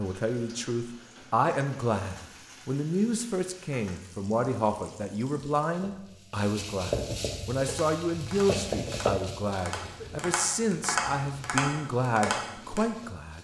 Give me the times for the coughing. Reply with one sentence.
You can hear the coughing from 9.7 to 10.1 s.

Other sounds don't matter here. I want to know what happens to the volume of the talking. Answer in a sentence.
The volume of the talking stays about the same.